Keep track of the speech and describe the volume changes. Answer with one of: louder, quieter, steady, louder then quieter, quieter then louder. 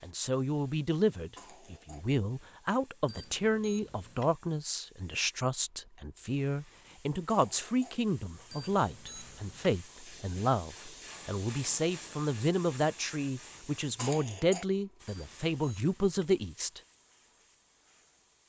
steady.